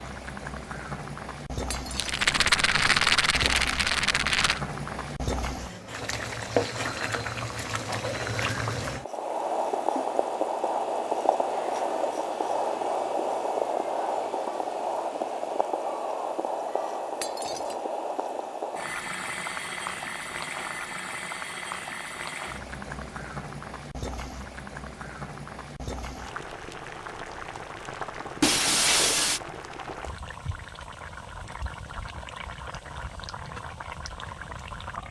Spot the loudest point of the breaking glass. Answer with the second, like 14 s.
29 s.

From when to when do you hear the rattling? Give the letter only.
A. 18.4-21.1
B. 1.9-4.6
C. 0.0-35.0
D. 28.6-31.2
B.